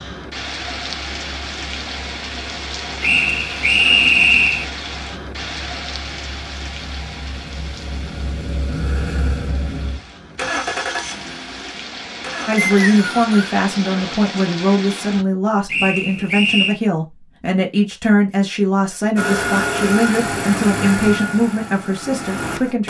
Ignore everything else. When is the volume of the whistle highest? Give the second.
4 s.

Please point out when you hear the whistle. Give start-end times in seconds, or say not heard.
3.0-4.7, 12.7-13.5, 15.7-16.8.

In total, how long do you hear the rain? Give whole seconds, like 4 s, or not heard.
15 s.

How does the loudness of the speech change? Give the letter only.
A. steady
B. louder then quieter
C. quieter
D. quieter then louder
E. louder
A.